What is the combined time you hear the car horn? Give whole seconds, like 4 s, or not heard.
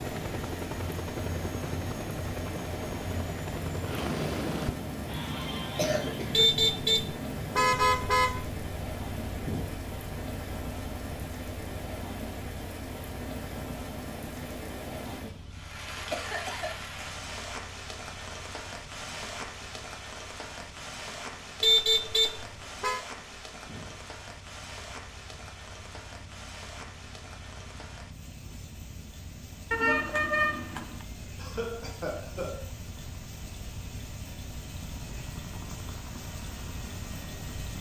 5 s.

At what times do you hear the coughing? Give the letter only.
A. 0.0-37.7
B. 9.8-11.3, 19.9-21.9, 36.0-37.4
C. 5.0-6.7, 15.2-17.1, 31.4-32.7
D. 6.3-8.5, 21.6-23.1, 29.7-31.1
C.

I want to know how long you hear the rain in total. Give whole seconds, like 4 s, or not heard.
38 s.